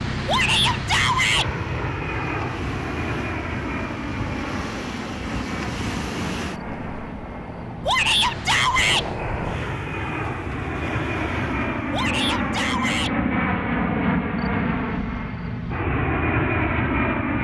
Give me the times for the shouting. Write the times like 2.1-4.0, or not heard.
0.2-1.5, 7.8-9.1, 11.9-13.2.